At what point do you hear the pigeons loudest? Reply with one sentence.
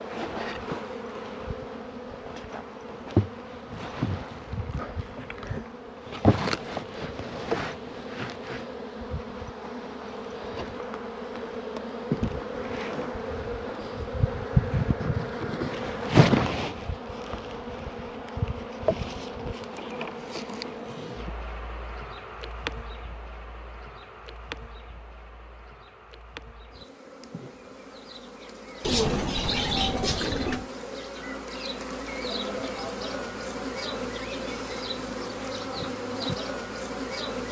The volume of the pigeons peaks at 29 seconds.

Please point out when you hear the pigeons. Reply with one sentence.
The pigeons can be heard from 28.8 to 30.7 s.